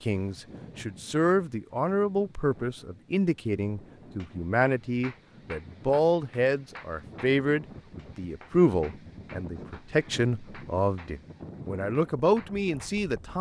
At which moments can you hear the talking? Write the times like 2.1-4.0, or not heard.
0.0-13.3.